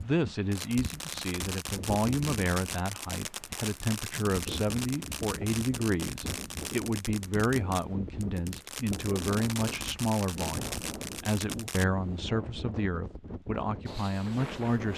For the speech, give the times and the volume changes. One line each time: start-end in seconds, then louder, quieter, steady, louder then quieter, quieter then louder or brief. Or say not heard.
0.0-14.9 steady.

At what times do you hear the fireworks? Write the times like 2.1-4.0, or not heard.
0.5-11.8.